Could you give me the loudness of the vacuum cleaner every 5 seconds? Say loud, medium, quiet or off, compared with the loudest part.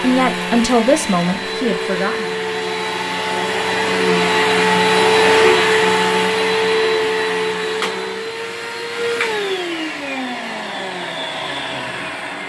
loud, loud, medium.